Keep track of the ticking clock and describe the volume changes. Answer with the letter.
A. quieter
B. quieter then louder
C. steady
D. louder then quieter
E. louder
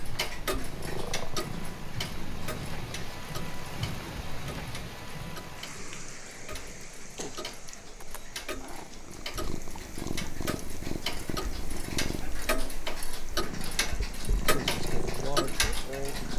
B.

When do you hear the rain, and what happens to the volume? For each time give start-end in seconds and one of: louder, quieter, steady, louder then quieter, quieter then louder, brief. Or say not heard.
0.0-16.2 quieter.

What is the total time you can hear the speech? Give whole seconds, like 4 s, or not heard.
2 s.